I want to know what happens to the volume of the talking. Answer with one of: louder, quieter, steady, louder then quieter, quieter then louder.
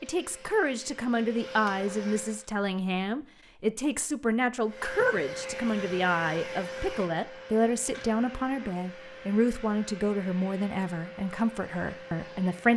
steady.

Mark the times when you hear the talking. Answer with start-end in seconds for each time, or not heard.
0.0-12.7.